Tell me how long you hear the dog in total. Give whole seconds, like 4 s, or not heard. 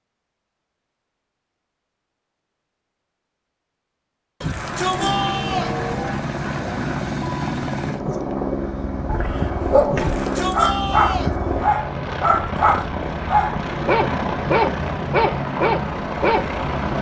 7 s.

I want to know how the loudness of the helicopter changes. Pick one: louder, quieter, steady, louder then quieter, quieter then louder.
steady.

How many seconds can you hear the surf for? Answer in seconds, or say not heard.
not heard.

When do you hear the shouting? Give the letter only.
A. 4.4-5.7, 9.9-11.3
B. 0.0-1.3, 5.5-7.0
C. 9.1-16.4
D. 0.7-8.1
A.